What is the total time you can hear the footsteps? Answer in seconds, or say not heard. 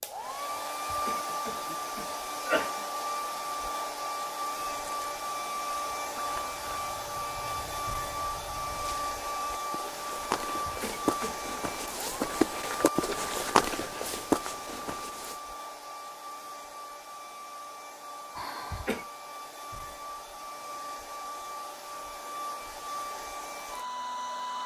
11 s.